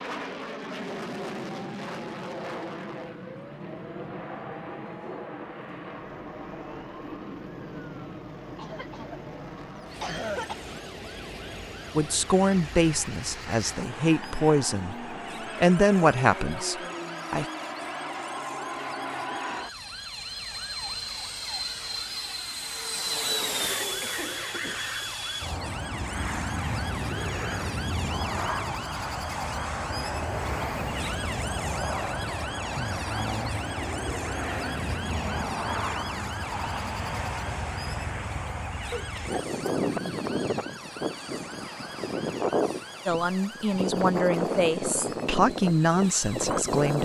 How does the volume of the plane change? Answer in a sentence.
The loudness of the plane goes up.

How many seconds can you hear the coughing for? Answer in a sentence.
The coughing can be heard for 4 seconds in total.